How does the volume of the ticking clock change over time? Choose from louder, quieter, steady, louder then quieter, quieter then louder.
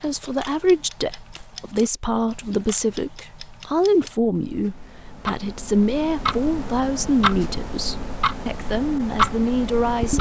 louder.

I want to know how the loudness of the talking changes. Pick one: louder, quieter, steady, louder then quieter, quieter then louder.
steady.